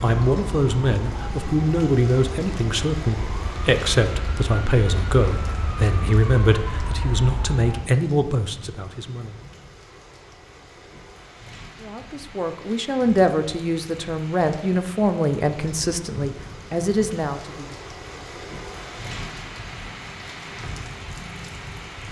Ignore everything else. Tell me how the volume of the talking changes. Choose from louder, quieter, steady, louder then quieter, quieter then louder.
steady.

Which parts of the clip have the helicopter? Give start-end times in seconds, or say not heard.
not heard.